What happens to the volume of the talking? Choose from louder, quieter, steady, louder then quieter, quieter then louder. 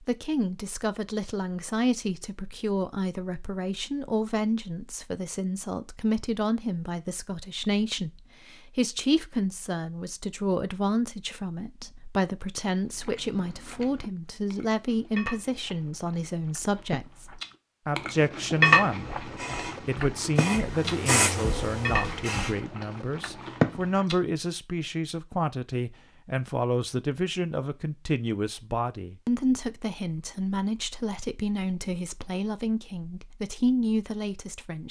steady.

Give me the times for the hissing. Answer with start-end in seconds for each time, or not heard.
18.9-22.6.